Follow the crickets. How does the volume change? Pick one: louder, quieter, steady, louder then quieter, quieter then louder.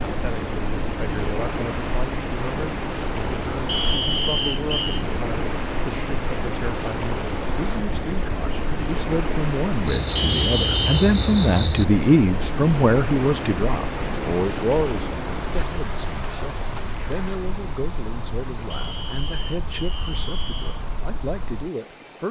steady.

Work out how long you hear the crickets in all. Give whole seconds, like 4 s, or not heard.
22 s.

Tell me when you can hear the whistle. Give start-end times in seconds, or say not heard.
3.6-5.0, 10.2-11.1, 18.7-20.9.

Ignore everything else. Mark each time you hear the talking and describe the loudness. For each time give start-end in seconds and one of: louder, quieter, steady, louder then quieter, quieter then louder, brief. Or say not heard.
0.1-22.2 louder then quieter.